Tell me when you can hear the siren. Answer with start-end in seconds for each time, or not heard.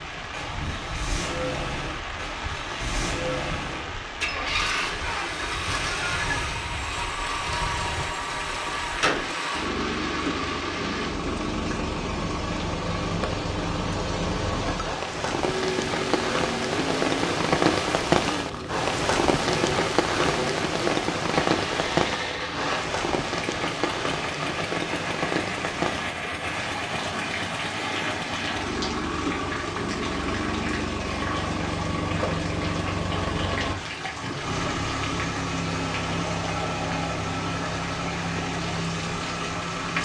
not heard.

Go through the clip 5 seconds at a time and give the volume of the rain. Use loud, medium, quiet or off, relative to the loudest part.
medium, medium, medium, loud, loud, medium, medium, medium.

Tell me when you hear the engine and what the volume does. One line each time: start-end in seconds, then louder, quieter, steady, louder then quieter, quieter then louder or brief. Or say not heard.
0.1-40.0 steady.